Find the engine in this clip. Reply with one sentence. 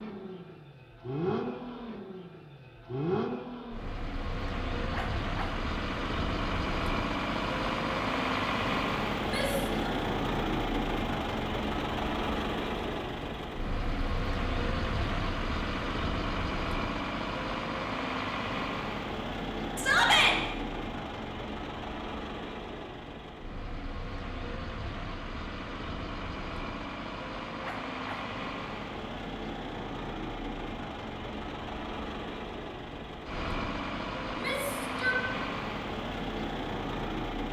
The engine can be heard from 0.0 to 37.4 s.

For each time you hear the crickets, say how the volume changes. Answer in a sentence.
You can't hear the crickets here.